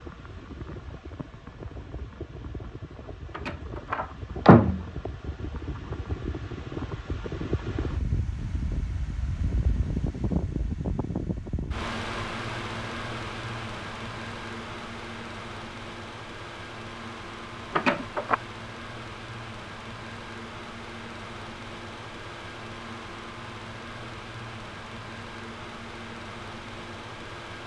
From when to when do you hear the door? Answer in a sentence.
You can hear the door from 3.4 to 4.8 s and from 17.8 to 18.4 s.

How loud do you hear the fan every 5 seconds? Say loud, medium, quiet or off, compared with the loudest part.
medium, loud, loud, medium, medium, medium.